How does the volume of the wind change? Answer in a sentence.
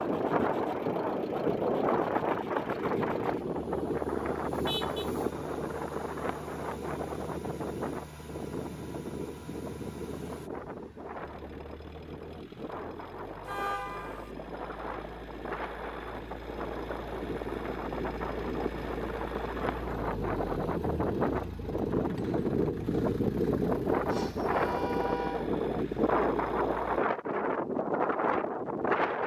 The loudness of the wind goes down, then up.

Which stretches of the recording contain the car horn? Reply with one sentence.
You can hear the car horn from 4.7 to 5.1 s, from 13.4 to 14.3 s and from 24.1 to 25.5 s.